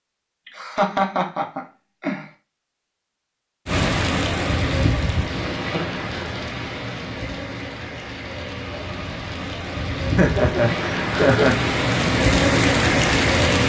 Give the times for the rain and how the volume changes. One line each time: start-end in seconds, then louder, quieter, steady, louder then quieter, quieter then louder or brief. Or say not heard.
3.6-13.6 quieter then louder.